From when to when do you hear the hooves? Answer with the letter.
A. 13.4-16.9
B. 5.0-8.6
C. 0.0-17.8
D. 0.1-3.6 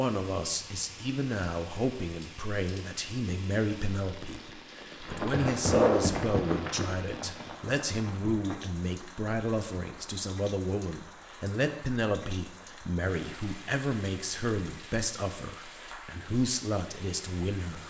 B.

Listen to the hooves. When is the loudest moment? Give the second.
6 s.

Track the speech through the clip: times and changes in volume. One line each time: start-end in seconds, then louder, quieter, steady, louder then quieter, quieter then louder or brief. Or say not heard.
0.0-17.8 steady.